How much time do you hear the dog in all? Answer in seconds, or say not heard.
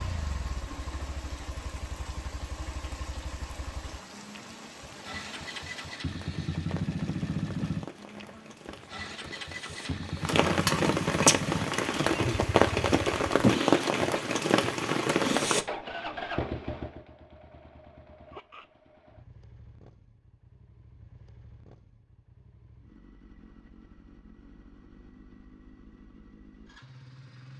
not heard.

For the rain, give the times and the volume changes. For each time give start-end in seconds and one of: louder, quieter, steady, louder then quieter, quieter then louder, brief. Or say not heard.
0.0-15.7 louder.